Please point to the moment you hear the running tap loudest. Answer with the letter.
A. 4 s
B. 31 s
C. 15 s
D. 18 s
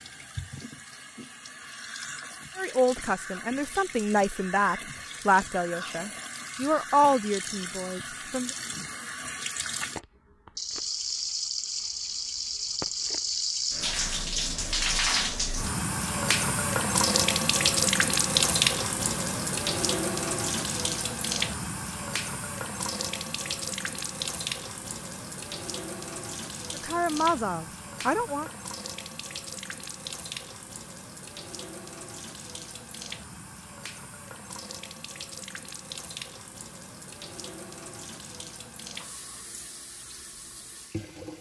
D.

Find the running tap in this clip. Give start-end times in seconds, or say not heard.
0.0-41.3.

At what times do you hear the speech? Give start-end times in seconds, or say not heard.
2.5-8.5, 26.8-28.4.